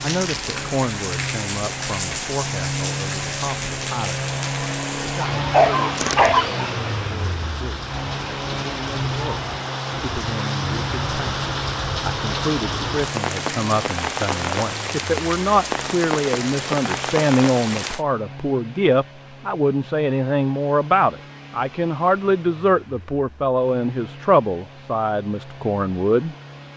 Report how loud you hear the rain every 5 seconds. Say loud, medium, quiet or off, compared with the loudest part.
loud, medium, loud, loud, off, off.